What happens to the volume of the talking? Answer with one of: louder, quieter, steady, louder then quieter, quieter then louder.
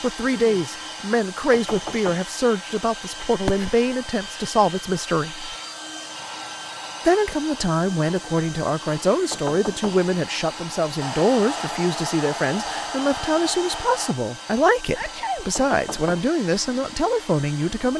steady.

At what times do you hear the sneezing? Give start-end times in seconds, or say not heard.
3.4-3.8, 14.9-15.5.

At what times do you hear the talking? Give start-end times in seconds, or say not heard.
0.0-5.5, 7.0-17.9.